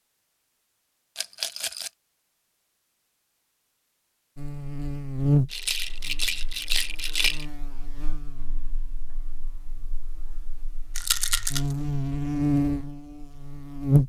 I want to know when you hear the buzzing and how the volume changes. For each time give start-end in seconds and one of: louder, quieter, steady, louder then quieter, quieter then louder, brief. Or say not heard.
4.3-14.0 quieter then louder.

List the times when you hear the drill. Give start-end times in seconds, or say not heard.
not heard.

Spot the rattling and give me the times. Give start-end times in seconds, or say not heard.
1.1-1.9, 5.5-7.5, 10.9-11.6.